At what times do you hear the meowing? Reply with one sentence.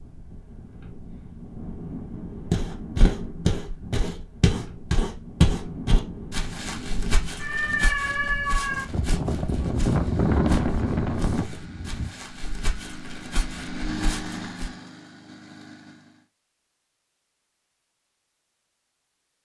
You can hear the meowing from 7.3 to 8.8 s.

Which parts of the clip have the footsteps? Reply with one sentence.
You can hear the footsteps from 2.5 to 14.7 s.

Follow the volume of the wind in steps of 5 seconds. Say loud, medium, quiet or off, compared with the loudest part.
quiet, medium, loud, off.